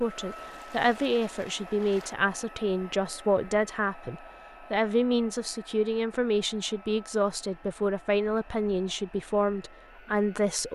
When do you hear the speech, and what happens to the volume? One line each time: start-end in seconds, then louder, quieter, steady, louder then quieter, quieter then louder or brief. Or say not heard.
0.0-10.6 steady.